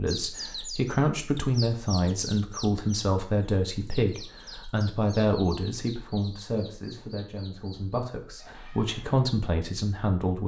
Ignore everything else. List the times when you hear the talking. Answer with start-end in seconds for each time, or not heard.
0.0-10.4.